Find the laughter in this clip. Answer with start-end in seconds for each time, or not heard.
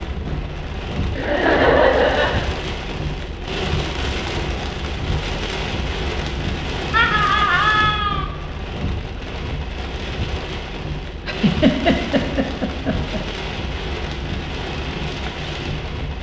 1.1-2.5, 6.9-8.2, 11.2-13.2.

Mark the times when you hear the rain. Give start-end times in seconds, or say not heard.
0.0-16.1.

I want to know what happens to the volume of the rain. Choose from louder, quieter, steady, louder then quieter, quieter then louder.
steady.